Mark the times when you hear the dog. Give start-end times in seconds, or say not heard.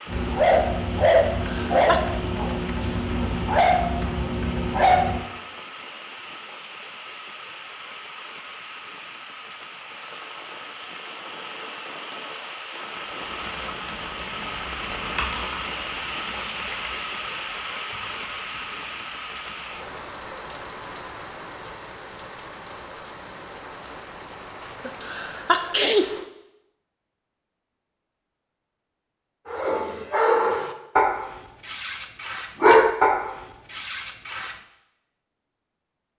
0.1-5.2, 29.4-34.5.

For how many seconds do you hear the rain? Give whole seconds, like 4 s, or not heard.
26 s.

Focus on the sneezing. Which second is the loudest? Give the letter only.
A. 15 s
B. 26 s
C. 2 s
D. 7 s
B.